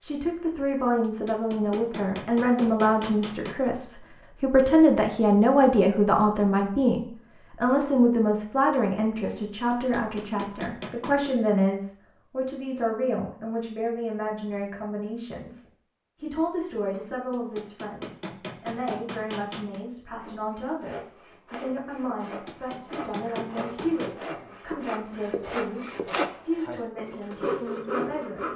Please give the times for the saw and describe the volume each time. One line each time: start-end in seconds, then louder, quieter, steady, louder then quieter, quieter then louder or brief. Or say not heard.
20.1-28.5 louder.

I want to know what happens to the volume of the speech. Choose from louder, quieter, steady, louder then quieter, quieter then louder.
quieter.